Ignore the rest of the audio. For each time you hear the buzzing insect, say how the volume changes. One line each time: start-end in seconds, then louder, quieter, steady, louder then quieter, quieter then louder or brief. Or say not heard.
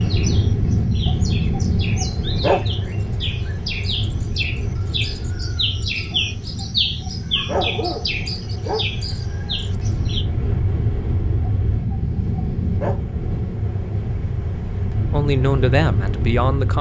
not heard.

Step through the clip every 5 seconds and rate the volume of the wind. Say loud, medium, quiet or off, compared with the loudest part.
loud, medium, loud, loud.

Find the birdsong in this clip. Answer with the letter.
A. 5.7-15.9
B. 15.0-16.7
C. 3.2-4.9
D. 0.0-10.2
D.